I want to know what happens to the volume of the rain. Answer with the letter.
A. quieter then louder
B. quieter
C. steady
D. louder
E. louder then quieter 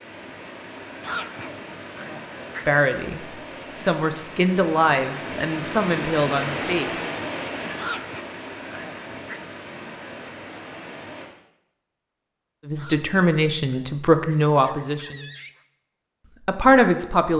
E.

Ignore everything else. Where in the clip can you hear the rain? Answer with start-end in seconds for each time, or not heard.
0.0-11.2.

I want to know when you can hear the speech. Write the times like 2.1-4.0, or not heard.
2.6-7.0, 12.7-15.3, 16.4-17.3.